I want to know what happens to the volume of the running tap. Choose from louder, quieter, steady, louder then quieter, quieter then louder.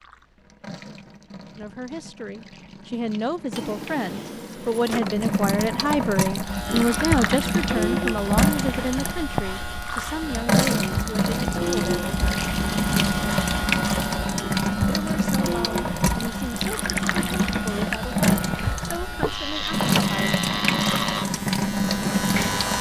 louder.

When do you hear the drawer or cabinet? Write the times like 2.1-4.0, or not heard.
3.5-5.3, 19.2-20.1.